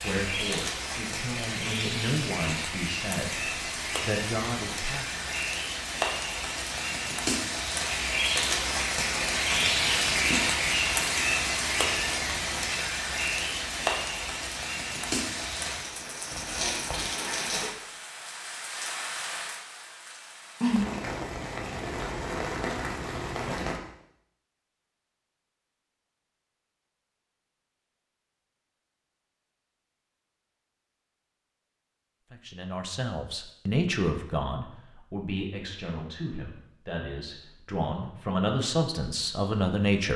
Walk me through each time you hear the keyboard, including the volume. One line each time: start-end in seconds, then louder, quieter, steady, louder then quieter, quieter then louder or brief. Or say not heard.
not heard.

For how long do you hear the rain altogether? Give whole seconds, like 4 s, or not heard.
24 s.